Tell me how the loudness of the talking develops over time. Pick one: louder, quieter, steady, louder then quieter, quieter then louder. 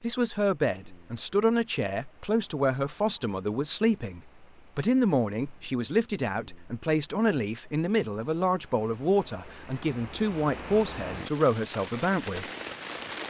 steady.